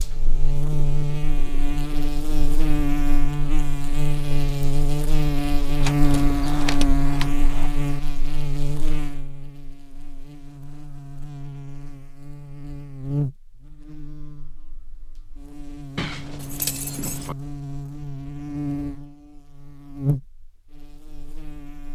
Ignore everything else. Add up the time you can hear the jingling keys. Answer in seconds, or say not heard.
3 s.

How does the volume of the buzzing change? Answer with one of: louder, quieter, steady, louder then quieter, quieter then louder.
quieter then louder.